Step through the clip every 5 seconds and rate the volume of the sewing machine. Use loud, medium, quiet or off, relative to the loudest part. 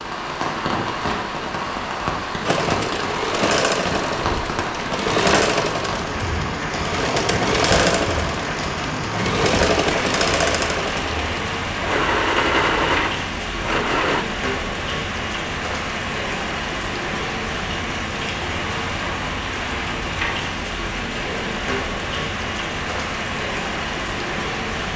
loud, loud, loud, off, off.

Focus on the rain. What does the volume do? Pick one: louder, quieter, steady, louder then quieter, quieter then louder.
steady.